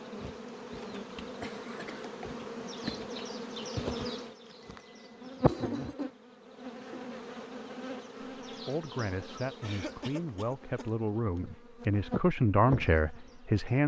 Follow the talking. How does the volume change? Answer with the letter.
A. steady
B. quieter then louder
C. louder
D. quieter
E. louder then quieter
C.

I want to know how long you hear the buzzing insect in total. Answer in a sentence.
You can hear the buzzing insect for 14 seconds altogether.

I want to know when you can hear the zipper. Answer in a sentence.
You can't hear the zipper here.